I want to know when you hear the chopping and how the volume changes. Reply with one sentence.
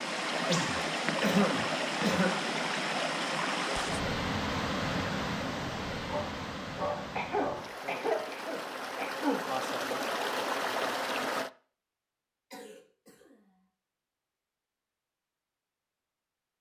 You can't hear the chopping here.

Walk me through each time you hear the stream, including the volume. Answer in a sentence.
The stream can be heard from 0.0 to 11.5 s, getting quieter then louder.